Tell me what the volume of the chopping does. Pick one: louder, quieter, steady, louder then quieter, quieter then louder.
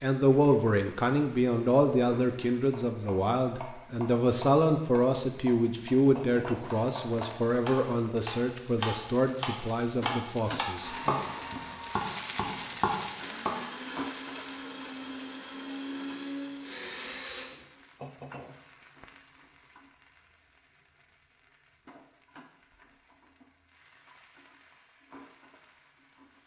louder.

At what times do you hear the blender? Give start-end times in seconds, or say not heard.
10.8-17.5.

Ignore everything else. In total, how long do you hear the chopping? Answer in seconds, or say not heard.
11 s.